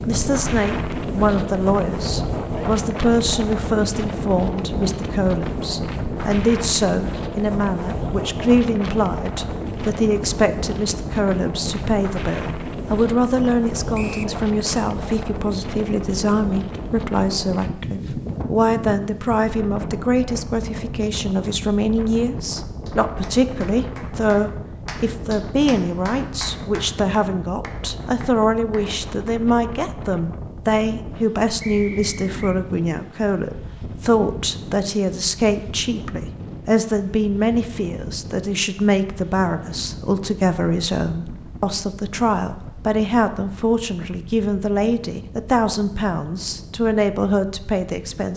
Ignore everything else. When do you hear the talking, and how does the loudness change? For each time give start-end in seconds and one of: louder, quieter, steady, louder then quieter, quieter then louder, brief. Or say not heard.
0.0-48.3 steady.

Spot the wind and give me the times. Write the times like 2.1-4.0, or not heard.
0.0-48.3.